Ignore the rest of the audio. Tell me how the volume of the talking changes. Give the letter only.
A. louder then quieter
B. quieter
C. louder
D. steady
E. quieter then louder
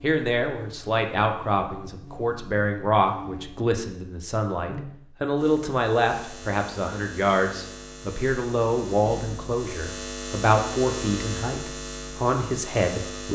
D.